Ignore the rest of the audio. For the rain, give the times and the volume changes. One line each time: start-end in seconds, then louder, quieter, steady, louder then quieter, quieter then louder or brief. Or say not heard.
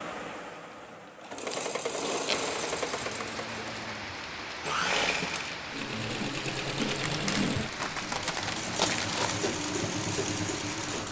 2.3-11.0 steady.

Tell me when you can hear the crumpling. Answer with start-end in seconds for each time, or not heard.
1.5-2.5, 6.8-9.5.